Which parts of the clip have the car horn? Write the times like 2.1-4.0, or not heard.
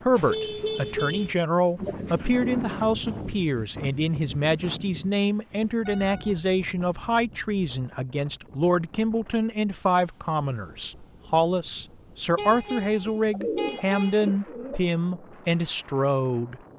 0.1-1.4, 5.8-7.6, 12.3-14.3.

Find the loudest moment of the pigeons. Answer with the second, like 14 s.
14 s.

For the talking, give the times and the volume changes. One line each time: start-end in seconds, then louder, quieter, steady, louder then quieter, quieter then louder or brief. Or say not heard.
0.0-16.6 steady.